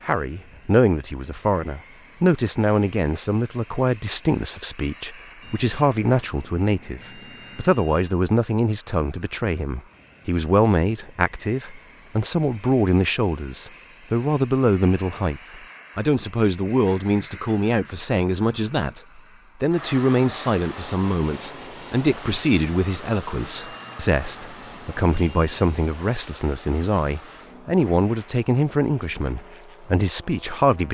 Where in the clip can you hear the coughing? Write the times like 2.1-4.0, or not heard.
not heard.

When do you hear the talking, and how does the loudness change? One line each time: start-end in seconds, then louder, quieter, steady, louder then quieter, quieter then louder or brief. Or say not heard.
0.0-30.8 steady.